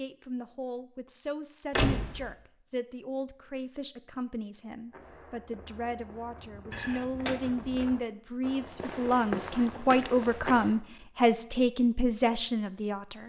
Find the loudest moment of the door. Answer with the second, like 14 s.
2 s.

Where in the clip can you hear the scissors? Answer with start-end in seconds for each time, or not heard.
not heard.